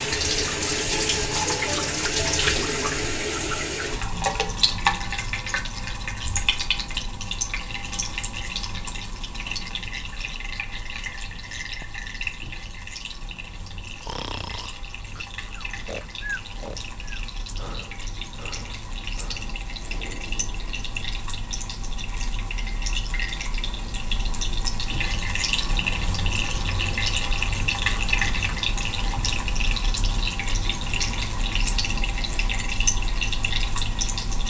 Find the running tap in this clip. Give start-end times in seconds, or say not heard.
0.0-34.4.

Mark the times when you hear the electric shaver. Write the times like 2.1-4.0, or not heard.
not heard.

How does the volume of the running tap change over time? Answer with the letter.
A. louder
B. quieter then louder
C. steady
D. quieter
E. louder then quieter
B.